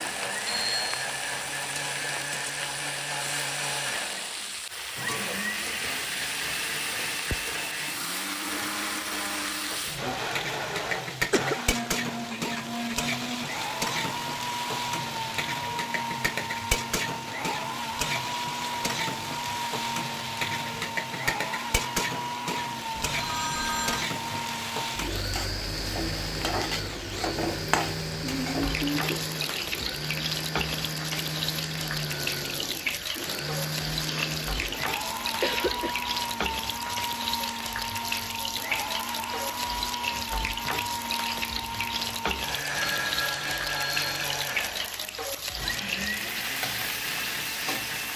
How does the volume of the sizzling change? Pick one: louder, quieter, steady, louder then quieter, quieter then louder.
steady.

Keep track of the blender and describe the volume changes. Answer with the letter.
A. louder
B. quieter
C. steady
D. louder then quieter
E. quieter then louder
C.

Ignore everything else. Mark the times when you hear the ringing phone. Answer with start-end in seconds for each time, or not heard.
0.5-0.9, 22.9-24.1, 42.8-44.2.